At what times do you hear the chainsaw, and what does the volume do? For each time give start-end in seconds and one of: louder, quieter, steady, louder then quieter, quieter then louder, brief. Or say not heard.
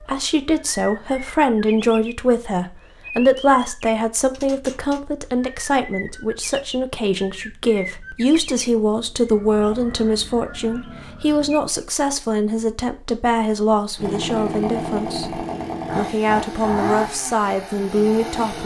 13.9-18.6 quieter.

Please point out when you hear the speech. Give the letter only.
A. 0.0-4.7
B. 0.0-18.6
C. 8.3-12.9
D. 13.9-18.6
B.